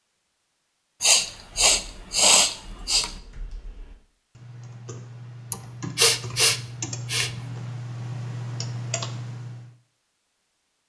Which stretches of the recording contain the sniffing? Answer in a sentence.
The sniffing can be heard from 1.0 to 3.1 s and from 5.5 to 7.3 s.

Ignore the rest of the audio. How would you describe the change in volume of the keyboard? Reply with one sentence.
The loudness of the keyboard goes up.